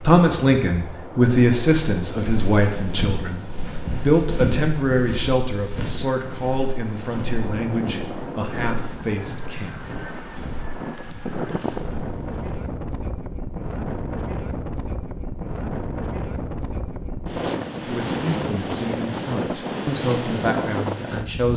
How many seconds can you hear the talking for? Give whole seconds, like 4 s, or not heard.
14 s.